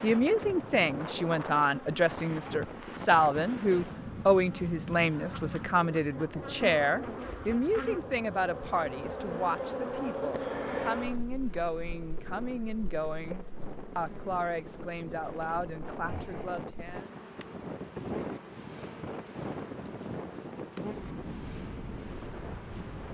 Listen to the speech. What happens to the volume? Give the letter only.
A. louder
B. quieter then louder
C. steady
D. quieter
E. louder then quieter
D.